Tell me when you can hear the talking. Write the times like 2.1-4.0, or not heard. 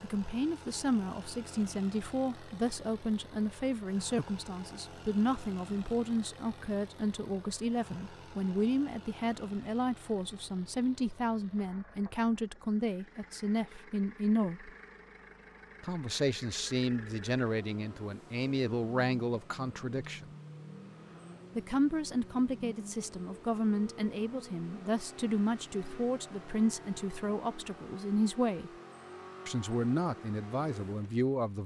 0.0-14.7, 15.8-20.3, 21.6-28.7, 29.4-31.6.